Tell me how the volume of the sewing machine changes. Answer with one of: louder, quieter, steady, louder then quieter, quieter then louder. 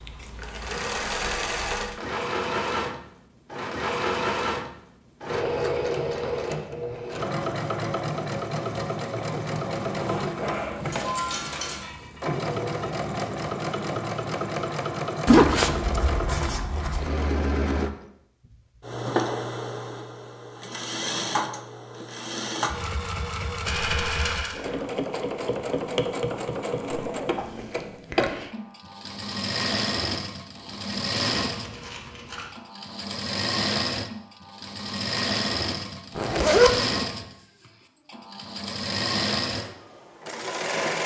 steady.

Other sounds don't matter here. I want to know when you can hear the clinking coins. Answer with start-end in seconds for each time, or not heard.
10.9-11.8, 23.6-24.6, 31.4-32.5.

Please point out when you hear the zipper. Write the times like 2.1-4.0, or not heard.
9.9-11.2, 15.2-17.1, 36.1-36.8.